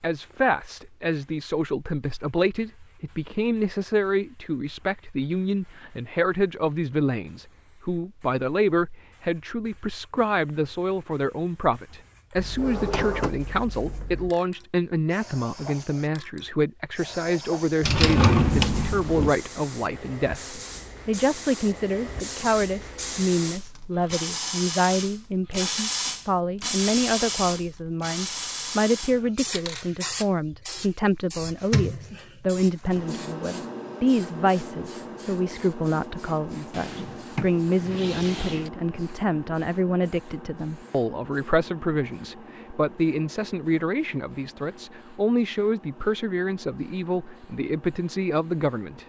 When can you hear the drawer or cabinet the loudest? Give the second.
18 s.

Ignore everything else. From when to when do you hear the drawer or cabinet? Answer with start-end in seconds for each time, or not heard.
12.3-14.3, 17.8-19.3, 36.7-38.7.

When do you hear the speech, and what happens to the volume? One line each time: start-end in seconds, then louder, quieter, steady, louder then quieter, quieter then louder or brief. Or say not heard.
0.0-49.0 steady.